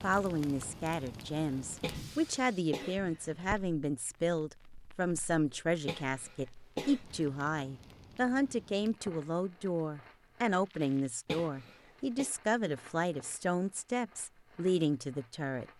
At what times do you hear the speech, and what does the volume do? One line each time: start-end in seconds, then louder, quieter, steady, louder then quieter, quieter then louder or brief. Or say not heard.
0.0-15.7 steady.